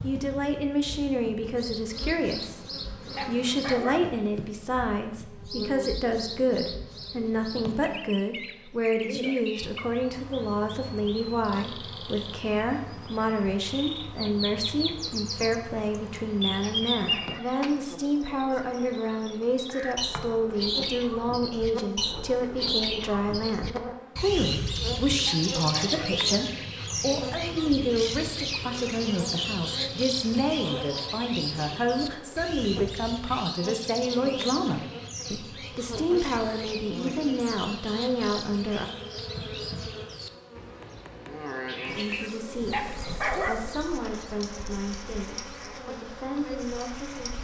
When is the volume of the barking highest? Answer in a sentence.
The loudest moment of the barking is at 43 seconds.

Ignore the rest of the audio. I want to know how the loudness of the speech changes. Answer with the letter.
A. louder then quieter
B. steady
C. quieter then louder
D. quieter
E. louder
B.